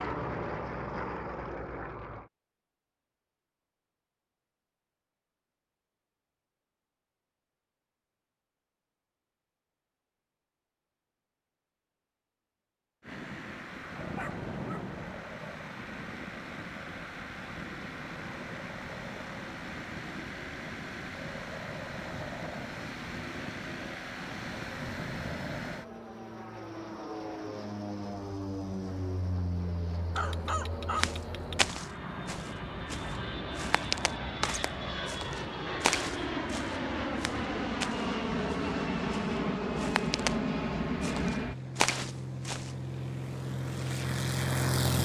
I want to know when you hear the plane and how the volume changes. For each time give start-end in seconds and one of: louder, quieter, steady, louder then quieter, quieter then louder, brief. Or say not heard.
0.0-2.3 brief
13.0-45.0 louder.